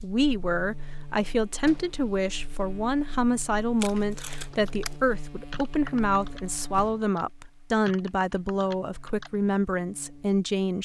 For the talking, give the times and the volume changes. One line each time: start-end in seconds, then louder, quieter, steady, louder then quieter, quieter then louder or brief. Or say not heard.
0.0-10.8 steady.